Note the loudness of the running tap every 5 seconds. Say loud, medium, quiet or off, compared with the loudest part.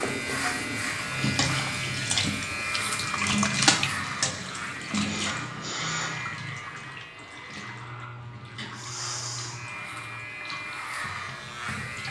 loud, medium, quiet.